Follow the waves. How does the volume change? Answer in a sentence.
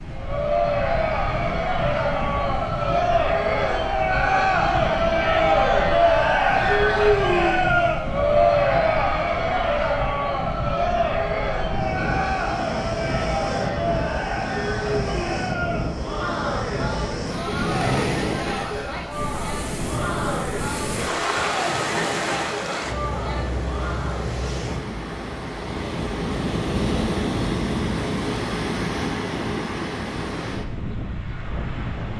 The loudness of the waves goes up.